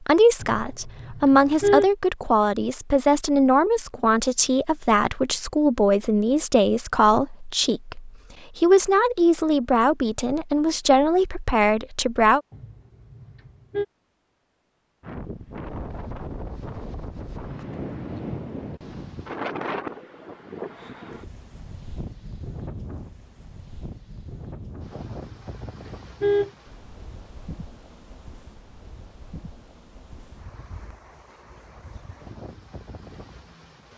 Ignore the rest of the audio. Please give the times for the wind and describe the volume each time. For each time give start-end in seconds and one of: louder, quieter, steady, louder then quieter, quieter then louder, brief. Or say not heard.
15.0-33.9 quieter.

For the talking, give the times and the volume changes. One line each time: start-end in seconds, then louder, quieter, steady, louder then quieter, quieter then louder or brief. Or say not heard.
0.0-12.4 steady.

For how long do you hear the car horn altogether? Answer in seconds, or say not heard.
4 s.